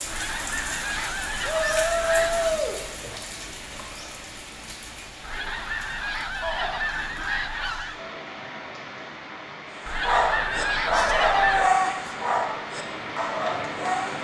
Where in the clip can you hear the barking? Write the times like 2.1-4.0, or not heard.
9.8-14.1.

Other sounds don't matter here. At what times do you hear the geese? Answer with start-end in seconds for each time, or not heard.
0.1-2.5, 5.2-8.0, 9.8-11.7.